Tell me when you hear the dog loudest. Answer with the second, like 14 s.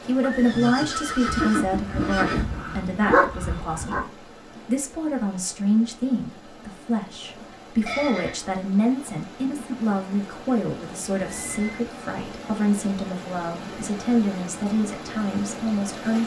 3 s.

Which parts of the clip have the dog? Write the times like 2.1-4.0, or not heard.
1.2-4.0.